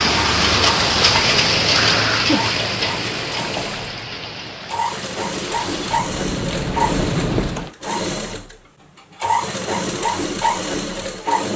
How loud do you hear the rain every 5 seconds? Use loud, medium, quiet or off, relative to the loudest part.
loud, medium, off.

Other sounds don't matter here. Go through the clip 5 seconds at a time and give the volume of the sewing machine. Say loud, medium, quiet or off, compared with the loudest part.
medium, loud, loud.